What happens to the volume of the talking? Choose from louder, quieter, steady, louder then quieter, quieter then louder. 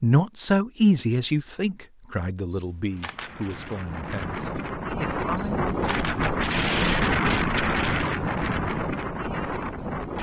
quieter.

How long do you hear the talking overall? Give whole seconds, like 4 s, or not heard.
6 s.